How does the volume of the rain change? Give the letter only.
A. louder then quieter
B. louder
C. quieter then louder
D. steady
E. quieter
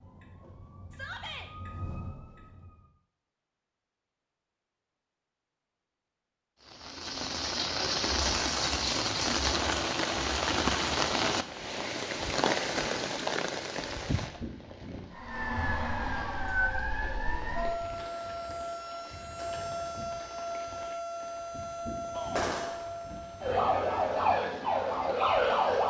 E.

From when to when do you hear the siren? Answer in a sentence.
You can hear the siren from 0.0 to 2.9 s and from 15.1 to 25.8 s.